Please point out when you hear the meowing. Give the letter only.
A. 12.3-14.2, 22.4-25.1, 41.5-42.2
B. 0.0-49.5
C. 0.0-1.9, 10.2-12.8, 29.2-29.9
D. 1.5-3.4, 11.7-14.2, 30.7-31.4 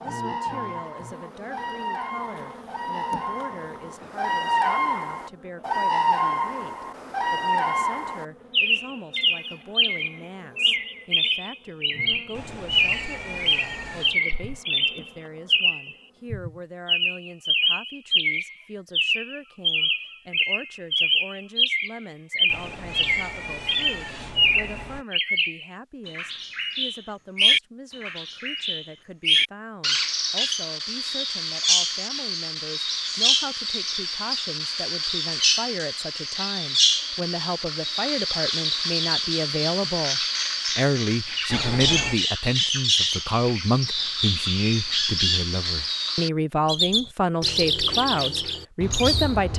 A.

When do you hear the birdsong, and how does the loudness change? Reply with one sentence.
You can hear the birdsong from 0.0 to 49.5 s, at a steady volume.